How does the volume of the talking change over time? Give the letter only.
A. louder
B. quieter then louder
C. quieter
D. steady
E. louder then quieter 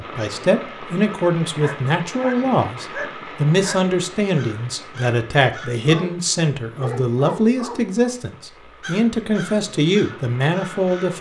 D.